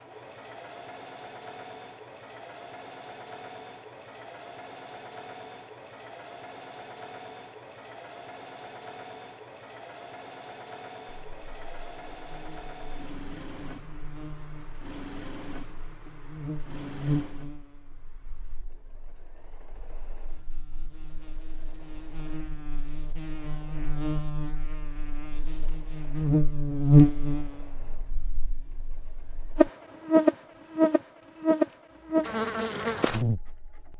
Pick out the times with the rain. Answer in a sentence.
You can't hear the rain here.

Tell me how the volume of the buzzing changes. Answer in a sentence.
The volume of the buzzing goes up.